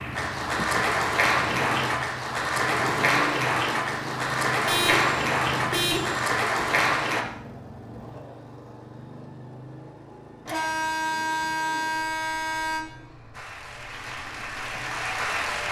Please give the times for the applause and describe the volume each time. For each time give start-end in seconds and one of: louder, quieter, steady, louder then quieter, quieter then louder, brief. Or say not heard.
0.0-7.2 steady
13.3-15.6 brief.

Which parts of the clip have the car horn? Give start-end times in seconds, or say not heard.
4.7-6.2, 10.4-12.8.